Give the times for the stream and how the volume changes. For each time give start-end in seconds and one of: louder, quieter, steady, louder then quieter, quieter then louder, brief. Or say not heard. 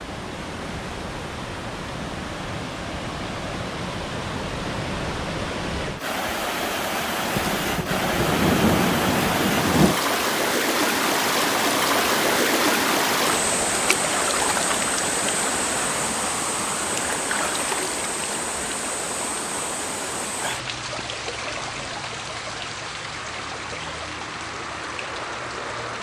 0.0-25.9 louder then quieter.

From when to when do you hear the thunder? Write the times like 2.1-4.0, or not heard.
7.3-10.0.